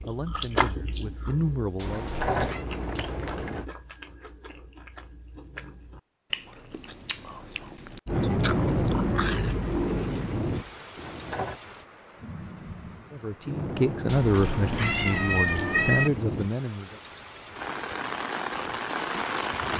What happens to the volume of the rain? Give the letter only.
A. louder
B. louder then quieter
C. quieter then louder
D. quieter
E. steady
C.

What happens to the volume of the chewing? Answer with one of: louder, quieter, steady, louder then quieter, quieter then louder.
quieter then louder.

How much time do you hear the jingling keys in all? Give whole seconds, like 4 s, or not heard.
4 s.